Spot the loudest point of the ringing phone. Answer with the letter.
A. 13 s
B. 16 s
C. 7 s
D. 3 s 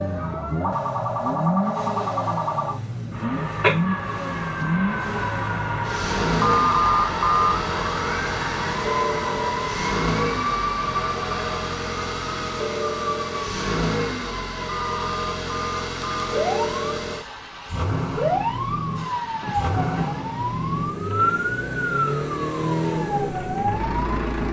C.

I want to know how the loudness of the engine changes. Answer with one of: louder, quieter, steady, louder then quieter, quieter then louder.
steady.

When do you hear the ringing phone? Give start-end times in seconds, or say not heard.
6.3-7.5, 14.7-16.2.